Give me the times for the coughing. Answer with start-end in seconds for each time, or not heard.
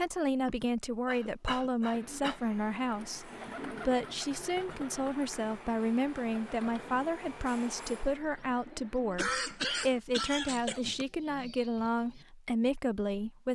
0.5-2.4, 9.2-11.1.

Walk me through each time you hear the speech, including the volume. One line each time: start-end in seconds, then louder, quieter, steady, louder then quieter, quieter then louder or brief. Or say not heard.
0.0-13.4 steady.